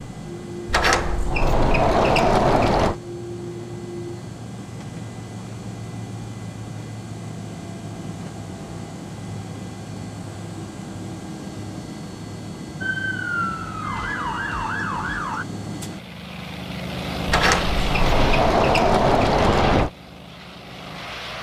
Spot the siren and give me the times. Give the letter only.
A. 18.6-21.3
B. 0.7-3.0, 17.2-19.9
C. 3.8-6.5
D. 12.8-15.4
D.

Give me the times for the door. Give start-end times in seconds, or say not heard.
0.7-3.0, 17.2-19.9.